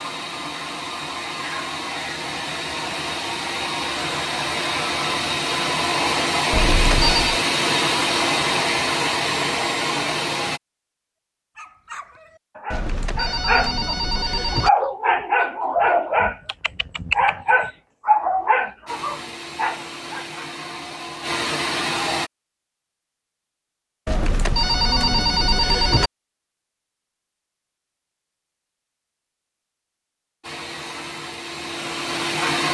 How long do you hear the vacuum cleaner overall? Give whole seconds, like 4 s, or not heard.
16 s.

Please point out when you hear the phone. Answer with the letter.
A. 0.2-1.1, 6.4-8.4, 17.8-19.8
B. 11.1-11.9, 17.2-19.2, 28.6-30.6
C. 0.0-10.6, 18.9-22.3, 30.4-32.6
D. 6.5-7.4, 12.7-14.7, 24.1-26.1
D.